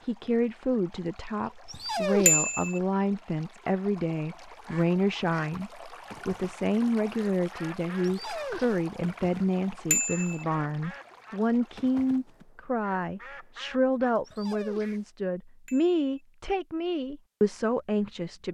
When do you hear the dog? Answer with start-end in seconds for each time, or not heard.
1.6-2.5, 8.0-8.8, 14.2-15.1.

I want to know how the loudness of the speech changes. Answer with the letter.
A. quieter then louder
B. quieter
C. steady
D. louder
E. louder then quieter
C.